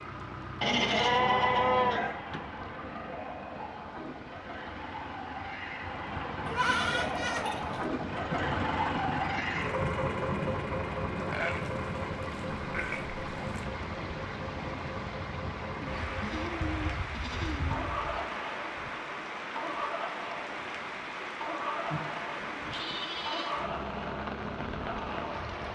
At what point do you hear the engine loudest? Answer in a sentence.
The loudest moment of the engine is at 9 seconds.